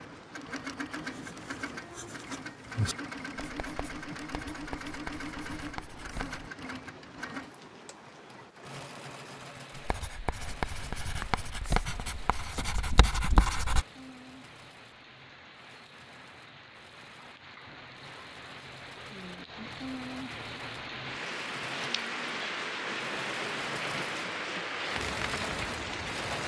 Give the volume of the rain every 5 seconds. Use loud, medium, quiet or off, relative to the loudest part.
quiet, quiet, quiet, medium, loud, loud.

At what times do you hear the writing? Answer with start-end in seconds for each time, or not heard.
1.0-6.5, 9.8-13.8.